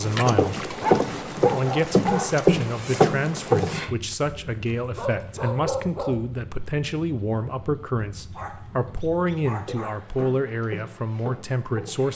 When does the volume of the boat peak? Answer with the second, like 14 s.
3 s.